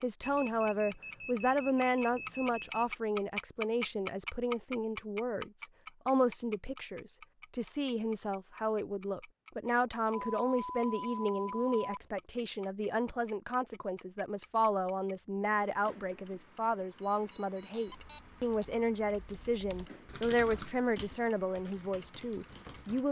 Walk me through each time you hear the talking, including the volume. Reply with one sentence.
The talking can be heard from 0.0 to 23.0 s, at a steady volume.